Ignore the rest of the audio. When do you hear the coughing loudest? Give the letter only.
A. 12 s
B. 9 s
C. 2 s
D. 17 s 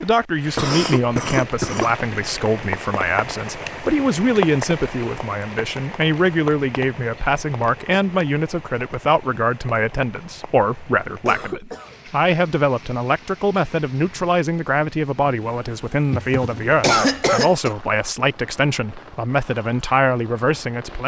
D.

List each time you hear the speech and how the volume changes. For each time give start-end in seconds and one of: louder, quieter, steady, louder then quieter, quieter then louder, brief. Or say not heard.
0.0-21.0 steady.